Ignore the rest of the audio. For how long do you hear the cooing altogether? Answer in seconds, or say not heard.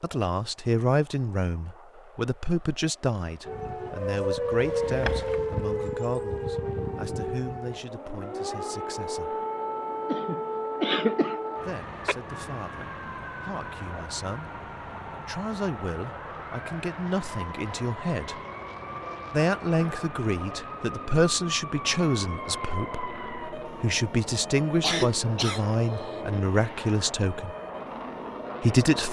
not heard.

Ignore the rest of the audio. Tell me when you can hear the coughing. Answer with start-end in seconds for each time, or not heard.
4.6-5.4, 10.1-11.3, 24.8-26.1.